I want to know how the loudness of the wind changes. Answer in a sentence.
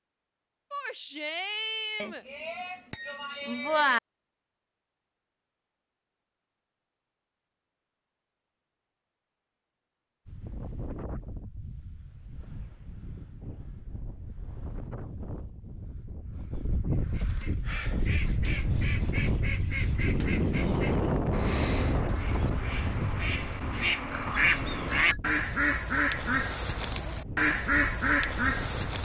The loudness of the wind goes up, then down.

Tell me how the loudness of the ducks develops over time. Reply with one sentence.
The loudness of the ducks goes up.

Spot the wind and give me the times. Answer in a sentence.
You can hear the wind from 10.2 to 29.0 s.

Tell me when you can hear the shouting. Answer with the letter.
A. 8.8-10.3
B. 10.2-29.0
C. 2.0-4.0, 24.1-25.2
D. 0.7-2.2
D.